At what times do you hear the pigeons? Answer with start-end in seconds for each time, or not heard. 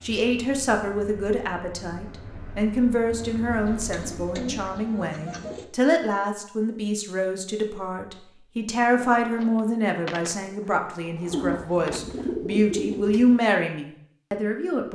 3.6-5.7, 11.3-13.3.